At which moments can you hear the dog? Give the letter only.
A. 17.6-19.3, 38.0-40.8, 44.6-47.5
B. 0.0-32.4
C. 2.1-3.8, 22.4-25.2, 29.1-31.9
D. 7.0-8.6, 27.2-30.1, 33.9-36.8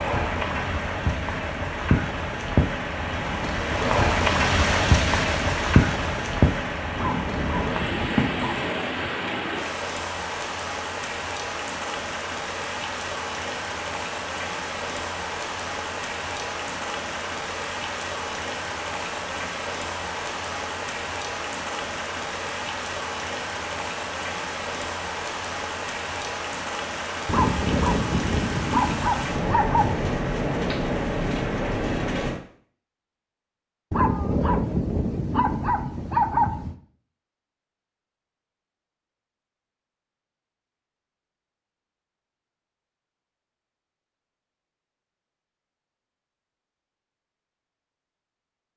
D.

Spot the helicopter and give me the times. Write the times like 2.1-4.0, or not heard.
not heard.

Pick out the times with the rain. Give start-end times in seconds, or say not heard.
0.0-32.4.